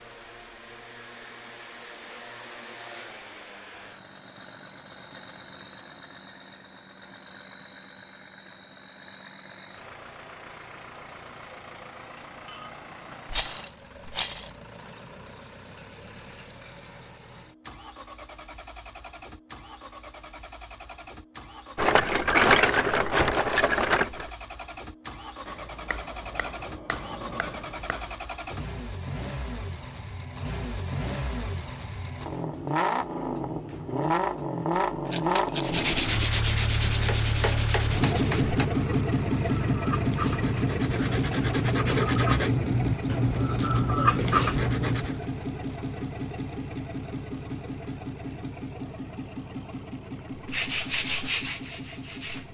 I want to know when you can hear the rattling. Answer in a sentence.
The rattling can be heard from 13.3 to 14.5 s, from 21.8 to 24.2 s and from 35.1 to 36.0 s.